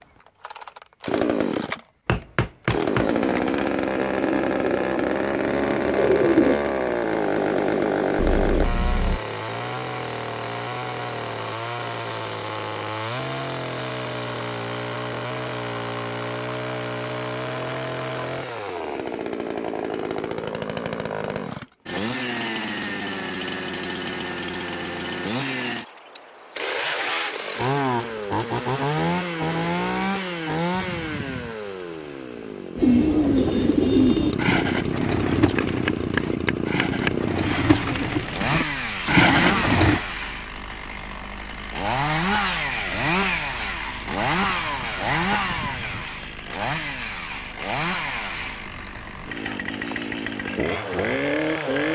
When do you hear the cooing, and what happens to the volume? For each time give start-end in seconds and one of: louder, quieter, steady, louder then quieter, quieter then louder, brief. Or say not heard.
3.9-6.7 brief
32.8-40.0 quieter then louder.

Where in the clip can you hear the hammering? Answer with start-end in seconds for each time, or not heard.
2.0-3.7, 35.5-37.3.